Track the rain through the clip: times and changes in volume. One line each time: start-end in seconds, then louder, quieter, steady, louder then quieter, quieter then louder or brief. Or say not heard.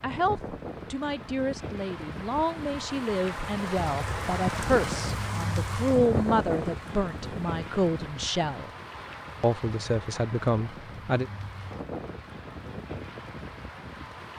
0.0-14.3 louder then quieter.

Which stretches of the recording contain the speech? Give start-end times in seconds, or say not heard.
0.0-8.7, 9.4-11.2.